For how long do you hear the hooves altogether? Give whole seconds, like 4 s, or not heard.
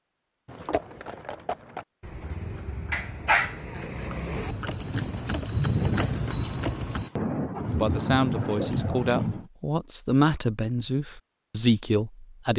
7 s.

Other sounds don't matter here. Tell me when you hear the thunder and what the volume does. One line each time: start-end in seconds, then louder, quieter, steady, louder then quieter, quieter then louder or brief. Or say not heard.
5.5-9.5 quieter then louder.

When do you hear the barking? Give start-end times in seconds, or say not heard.
2.9-4.5.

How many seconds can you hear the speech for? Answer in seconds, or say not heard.
5 s.